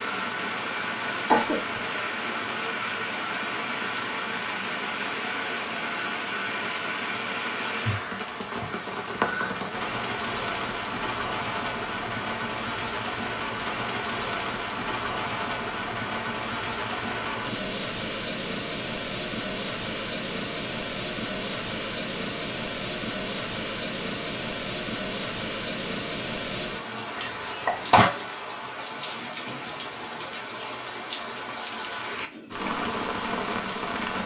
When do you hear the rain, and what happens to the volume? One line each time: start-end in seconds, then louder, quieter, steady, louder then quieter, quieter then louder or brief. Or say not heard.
0.0-34.2 steady.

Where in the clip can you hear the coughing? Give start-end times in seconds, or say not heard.
1.2-1.8, 27.1-28.1.